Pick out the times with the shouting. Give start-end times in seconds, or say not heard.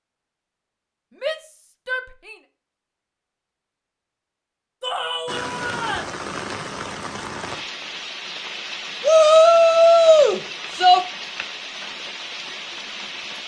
1.2-2.4, 4.8-6.2, 9.0-11.0.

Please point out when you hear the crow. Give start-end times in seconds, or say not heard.
not heard.